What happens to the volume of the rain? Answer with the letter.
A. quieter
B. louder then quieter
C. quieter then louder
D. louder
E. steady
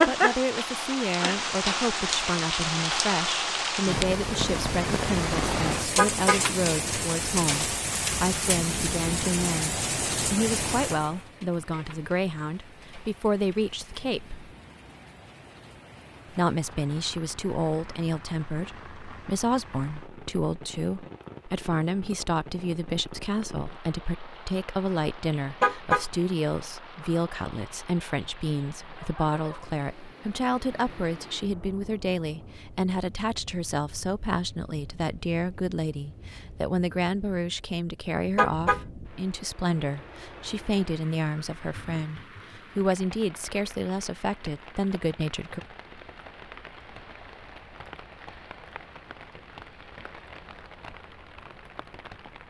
A.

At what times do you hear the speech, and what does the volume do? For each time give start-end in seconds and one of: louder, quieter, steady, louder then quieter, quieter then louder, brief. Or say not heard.
0.1-14.4 steady
16.3-45.6 steady.